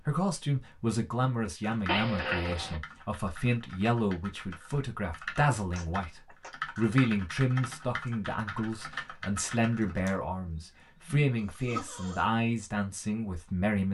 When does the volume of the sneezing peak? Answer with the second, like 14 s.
2 s.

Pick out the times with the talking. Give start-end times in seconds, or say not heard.
0.1-13.8.